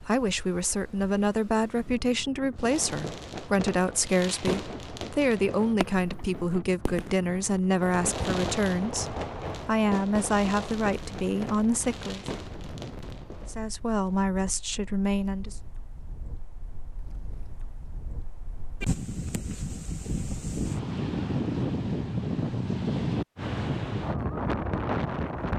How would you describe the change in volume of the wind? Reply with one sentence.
The loudness of the wind goes up.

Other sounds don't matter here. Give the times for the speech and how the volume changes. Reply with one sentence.
The speech can be heard from 0.0 to 12.2 s, at a steady volume; and briefly from 13.4 to 15.6 s.